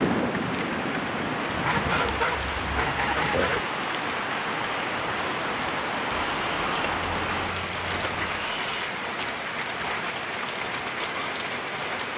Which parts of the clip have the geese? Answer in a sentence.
You can hear the geese from 1.6 to 3.6 s and from 6.1 to 8.9 s.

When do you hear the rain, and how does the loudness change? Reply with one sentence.
You can hear the rain from 0.0 to 12.1 s, at a steady volume.